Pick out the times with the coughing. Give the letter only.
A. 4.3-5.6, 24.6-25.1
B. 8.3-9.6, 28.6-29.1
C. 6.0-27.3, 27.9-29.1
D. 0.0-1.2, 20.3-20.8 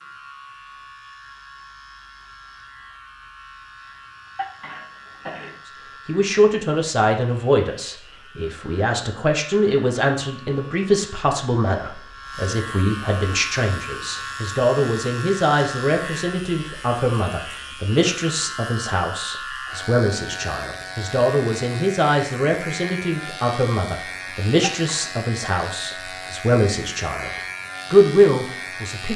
A.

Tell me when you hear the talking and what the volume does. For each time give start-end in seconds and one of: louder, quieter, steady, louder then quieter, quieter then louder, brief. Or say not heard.
6.0-27.3 steady
27.9-29.1 brief.